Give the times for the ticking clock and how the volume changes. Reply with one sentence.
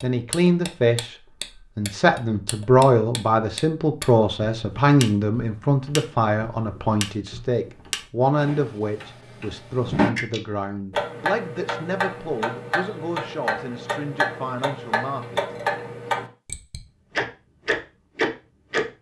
The ticking clock can be heard from 0.0 to 18.9 s, getting louder.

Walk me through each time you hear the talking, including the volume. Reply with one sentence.
The talking can be heard from 0.0 to 15.4 s, getting quieter.